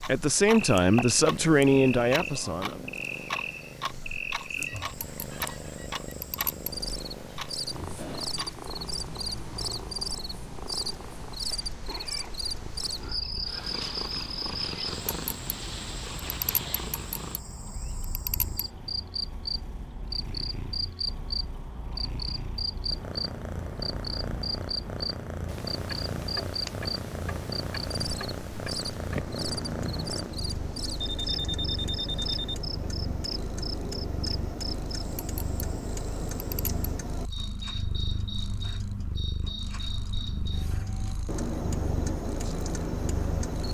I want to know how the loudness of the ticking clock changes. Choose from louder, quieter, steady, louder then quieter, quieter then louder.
quieter then louder.